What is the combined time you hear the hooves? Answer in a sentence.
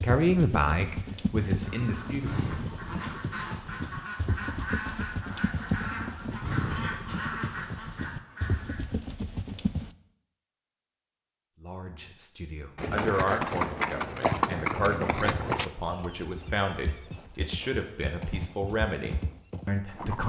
The hooves can be heard for 17 seconds in total.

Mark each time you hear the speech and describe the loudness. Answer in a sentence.
You can hear the speech briefly from 0.0 to 2.5 s; and from 11.6 to 20.2 s, at a steady volume.